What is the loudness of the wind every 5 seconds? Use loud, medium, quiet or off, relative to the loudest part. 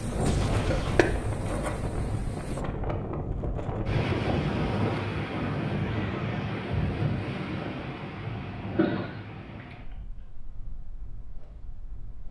loud, loud, quiet.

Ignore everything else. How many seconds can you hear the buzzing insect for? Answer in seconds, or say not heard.
3 s.